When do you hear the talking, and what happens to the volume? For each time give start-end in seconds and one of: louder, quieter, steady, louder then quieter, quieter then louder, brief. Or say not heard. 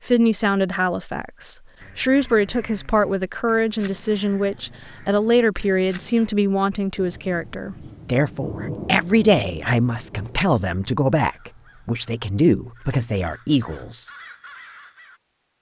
0.0-14.1 steady.